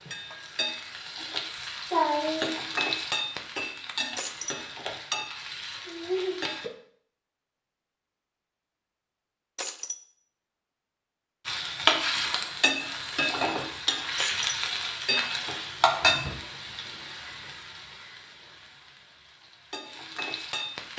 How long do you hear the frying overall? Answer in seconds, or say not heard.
16 s.